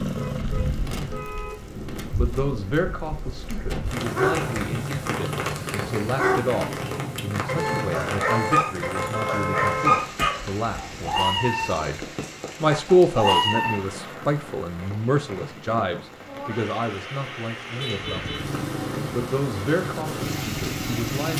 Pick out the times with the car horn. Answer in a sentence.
The car horn can be heard from 0.1 to 1.6 s, from 7.5 to 10.1 s and from 17.8 to 18.4 s.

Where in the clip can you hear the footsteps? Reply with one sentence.
You can't hear the footsteps here.